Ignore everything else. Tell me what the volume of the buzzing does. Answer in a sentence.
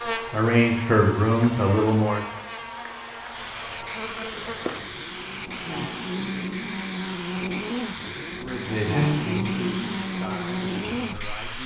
The loudness of the buzzing goes up.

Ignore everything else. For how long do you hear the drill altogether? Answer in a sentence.
You can't hear the drill here.